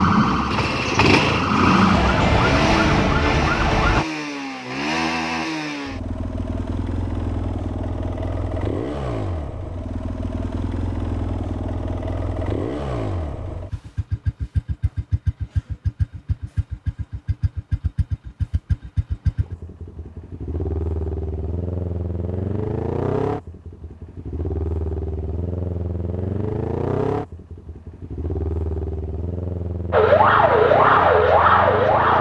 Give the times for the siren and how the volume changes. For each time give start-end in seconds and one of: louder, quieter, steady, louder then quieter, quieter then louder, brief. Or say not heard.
0.0-4.0 louder
29.9-32.1 brief.